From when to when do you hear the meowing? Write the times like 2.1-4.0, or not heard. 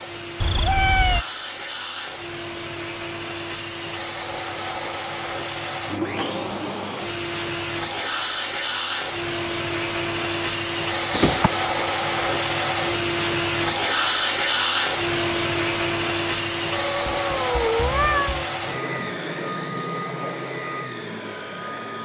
0.4-1.2, 11.1-11.5, 16.7-18.5.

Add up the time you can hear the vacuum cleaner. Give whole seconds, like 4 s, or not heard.
22 s.